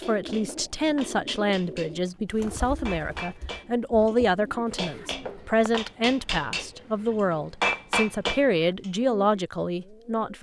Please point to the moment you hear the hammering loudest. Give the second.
8 s.